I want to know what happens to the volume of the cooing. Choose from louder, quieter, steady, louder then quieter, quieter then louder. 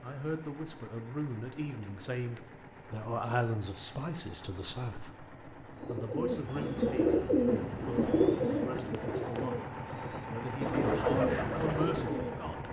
quieter then louder.